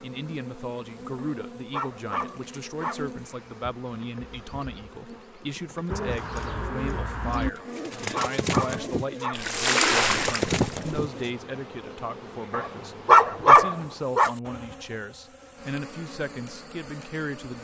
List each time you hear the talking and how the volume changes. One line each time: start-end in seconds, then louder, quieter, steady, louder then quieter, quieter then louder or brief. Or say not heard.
0.0-17.5 steady.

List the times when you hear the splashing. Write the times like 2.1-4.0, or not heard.
9.3-10.9.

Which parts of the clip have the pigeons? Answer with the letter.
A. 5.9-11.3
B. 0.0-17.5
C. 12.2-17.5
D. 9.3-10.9
A.